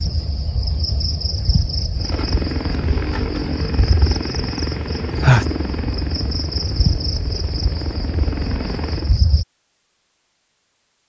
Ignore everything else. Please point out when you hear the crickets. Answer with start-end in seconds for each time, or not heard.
0.0-9.4.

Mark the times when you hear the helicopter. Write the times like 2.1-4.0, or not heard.
1.9-9.2.